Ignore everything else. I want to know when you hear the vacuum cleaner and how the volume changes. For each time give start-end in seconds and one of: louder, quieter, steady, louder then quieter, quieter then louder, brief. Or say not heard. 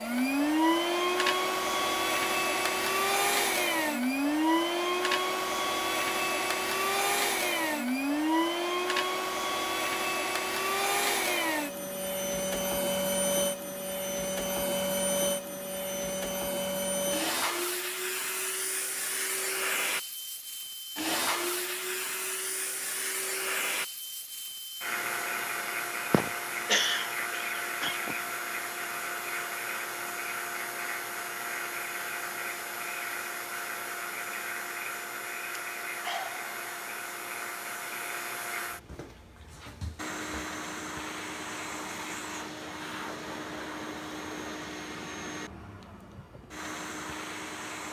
0.0-47.8 quieter.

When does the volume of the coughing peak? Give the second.
27 s.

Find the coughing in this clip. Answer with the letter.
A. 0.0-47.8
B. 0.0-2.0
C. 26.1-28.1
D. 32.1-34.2
C.